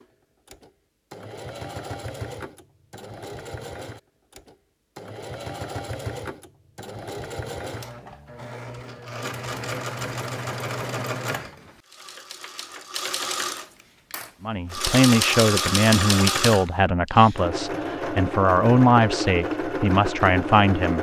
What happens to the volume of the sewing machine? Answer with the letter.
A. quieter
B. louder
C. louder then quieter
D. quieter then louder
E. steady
B.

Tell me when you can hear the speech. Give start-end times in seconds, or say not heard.
14.4-20.9.